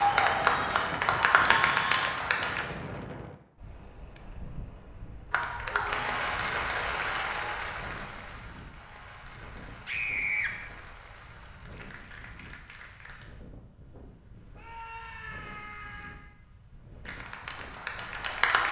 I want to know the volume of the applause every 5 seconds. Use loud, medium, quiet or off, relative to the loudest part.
loud, medium, quiet, medium.